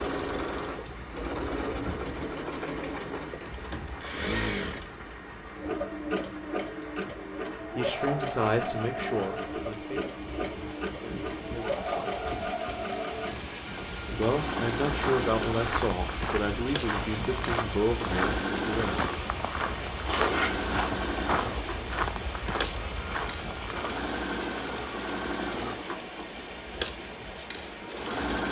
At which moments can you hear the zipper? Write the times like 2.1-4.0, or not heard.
20.1-20.9.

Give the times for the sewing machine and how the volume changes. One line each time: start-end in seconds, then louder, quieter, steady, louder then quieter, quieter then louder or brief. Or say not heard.
0.0-28.4 steady.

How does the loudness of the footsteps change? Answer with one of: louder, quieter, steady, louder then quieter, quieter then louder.
steady.